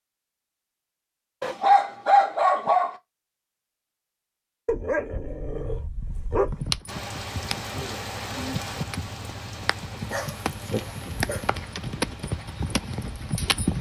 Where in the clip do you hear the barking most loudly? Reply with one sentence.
The loudest moment of the barking is at 2 seconds.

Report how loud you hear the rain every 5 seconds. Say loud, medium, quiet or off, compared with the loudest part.
off, loud, medium.